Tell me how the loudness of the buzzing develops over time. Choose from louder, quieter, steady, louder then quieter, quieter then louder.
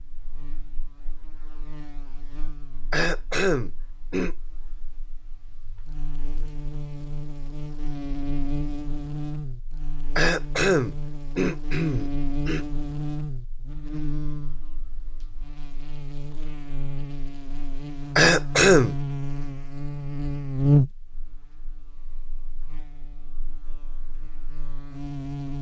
louder.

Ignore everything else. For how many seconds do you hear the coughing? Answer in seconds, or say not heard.
5 s.